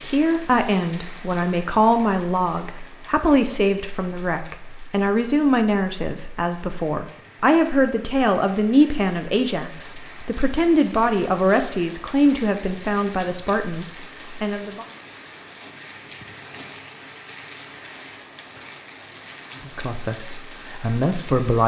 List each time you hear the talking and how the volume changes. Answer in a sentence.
The talking can be heard from 0.0 to 14.8 s, at a steady volume; and briefly from 19.6 to 21.6 s.